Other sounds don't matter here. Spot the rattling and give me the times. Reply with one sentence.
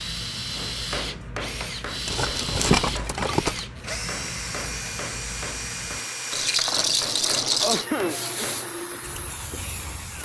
You can hear the rattling from 2.0 to 3.6 s and from 6.3 to 7.8 s.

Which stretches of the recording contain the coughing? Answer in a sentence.
The coughing can be heard from 7.6 to 8.5 s.